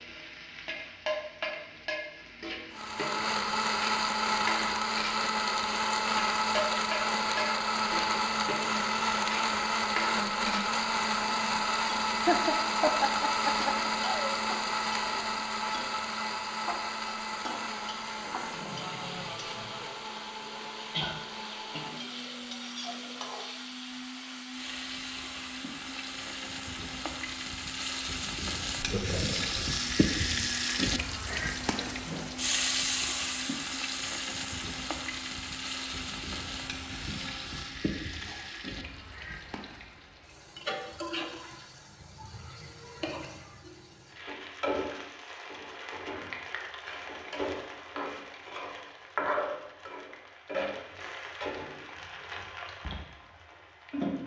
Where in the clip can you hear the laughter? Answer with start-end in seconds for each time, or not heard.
12.2-14.3, 28.8-29.7.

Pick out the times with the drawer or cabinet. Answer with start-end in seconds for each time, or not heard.
18.0-18.9, 31.3-32.3.